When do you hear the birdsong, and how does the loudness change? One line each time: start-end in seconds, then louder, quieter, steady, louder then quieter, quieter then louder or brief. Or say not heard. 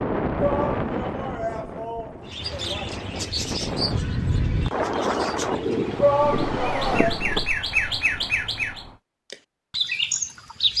2.2-10.7 quieter then louder.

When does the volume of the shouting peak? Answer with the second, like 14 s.
6 s.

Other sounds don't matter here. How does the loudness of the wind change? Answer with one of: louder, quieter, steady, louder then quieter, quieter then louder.
quieter then louder.